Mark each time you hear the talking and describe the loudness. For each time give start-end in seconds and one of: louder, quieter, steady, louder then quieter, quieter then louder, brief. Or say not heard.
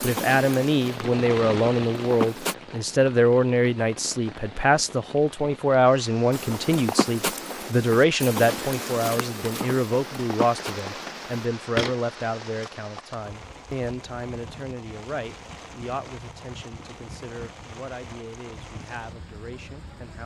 0.0-20.2 quieter.